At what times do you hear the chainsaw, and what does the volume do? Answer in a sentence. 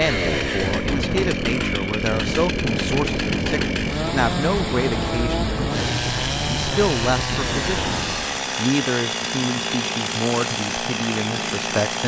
The chainsaw can be heard from 0.0 to 12.0 s, at a steady volume.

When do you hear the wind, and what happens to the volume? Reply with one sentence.
The wind can be heard from 0.1 to 8.4 s, at a steady volume.